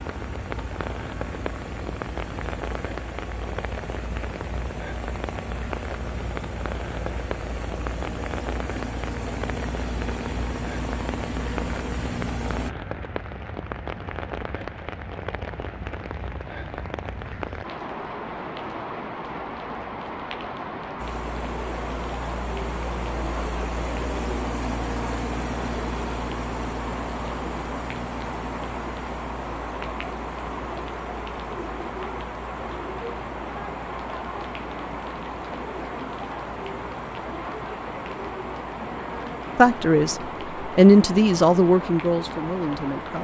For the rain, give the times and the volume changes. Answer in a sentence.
You can hear the rain from 0.0 to 43.1 s, at a steady volume.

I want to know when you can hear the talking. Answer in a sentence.
You can hear the talking from 39.5 to 43.1 s.